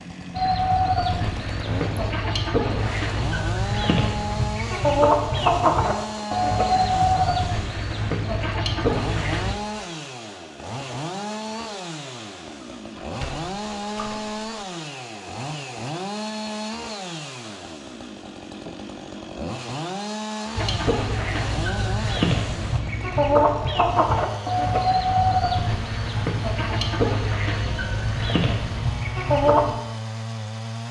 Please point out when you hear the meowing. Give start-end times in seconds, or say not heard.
not heard.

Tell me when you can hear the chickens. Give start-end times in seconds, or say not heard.
0.3-9.6, 20.6-29.8.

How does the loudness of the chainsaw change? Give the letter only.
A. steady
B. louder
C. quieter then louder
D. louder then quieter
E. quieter
A.